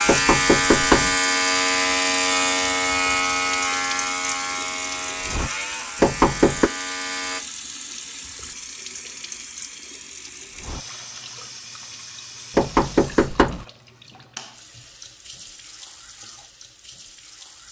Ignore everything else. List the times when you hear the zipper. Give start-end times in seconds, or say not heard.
not heard.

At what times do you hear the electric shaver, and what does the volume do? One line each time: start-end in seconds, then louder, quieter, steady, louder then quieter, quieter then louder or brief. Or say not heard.
0.0-7.4 quieter.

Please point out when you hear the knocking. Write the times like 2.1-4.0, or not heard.
0.1-1.1, 6.0-6.7, 12.6-13.7.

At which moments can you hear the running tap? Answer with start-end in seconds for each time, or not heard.
0.0-17.6.